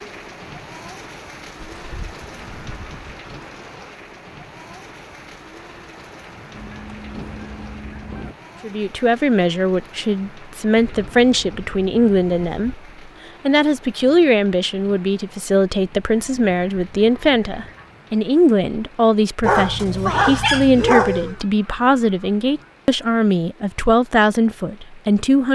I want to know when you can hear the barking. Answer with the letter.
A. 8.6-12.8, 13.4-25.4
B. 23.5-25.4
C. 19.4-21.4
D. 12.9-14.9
C.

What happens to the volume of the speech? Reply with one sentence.
The volume of the speech stays about the same.